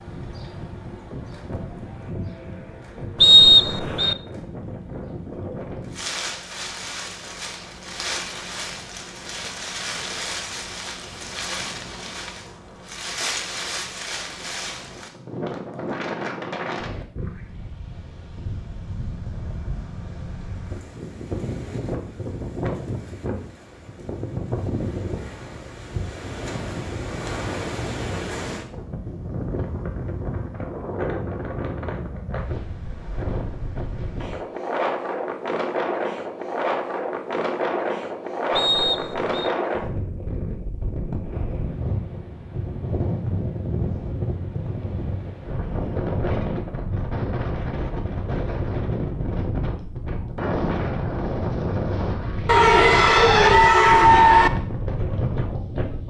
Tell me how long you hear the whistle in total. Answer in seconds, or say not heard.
2 s.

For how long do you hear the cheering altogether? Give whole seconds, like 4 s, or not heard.
2 s.